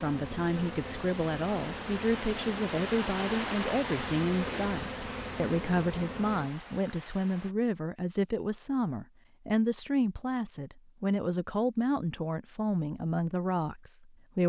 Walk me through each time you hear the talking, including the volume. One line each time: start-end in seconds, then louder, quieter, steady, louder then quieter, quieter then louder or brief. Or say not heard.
0.0-14.4 steady.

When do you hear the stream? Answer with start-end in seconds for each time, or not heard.
0.0-7.5.